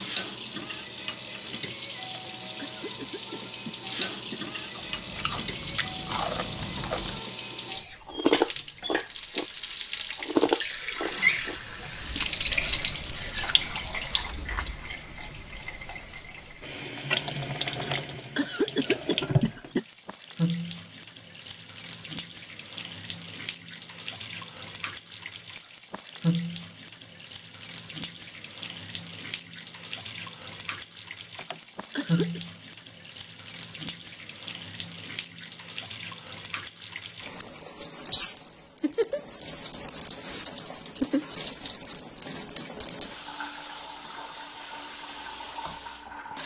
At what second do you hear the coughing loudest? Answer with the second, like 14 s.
19 s.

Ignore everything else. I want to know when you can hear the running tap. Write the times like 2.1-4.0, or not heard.
0.0-46.4.